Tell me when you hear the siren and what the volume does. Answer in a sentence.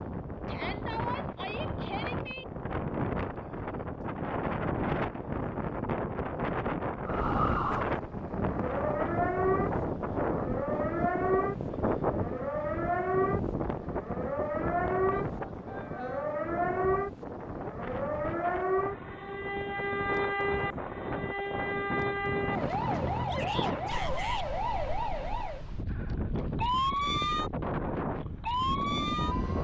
You can hear the siren from 7.0 to 29.6 s, at a steady volume.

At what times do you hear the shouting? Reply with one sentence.
You can hear the shouting from 0.5 to 2.5 s, from 15.1 to 16.2 s and from 23.2 to 24.4 s.